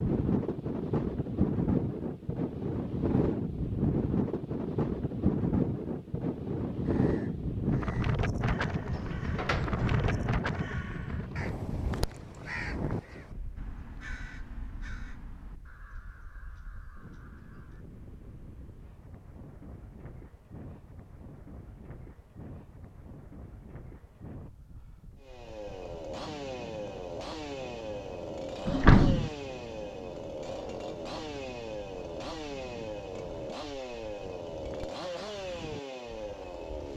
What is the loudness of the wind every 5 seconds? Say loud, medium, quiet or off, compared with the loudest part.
loud, loud, medium, quiet, quiet, quiet, quiet, quiet.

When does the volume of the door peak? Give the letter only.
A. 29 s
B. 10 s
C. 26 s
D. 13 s
A.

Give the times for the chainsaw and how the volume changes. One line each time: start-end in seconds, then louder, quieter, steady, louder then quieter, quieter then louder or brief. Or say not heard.
25.2-36.9 steady.